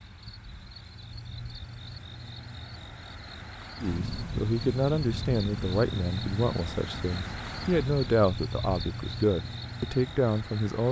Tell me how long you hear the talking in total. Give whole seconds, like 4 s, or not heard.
7 s.